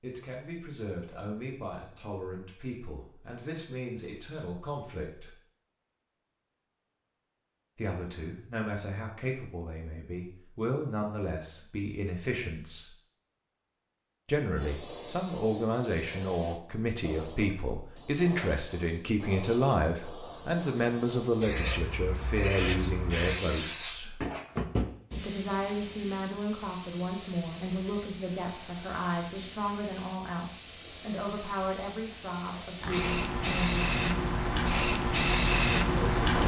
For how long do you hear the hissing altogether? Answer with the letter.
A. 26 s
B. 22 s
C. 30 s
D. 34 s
B.